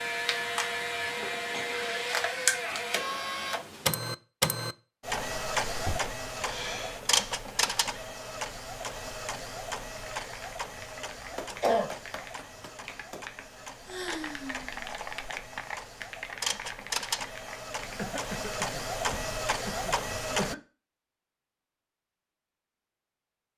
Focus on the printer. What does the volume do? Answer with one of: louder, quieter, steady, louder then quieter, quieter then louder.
quieter then louder.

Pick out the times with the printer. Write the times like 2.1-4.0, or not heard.
0.0-20.6.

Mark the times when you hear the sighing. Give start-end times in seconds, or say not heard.
5.8-7.0, 13.7-14.8.